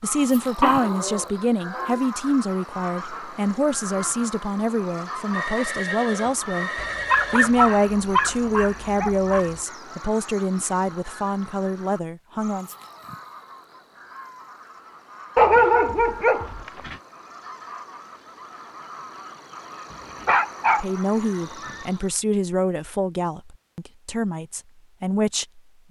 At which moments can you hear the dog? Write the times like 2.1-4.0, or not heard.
0.6-1.9, 6.8-9.4, 15.3-16.9, 19.9-21.9.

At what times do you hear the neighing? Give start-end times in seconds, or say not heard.
5.3-7.7.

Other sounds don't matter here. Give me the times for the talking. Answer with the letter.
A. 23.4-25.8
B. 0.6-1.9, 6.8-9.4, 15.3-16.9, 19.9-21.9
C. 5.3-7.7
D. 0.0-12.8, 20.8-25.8
D.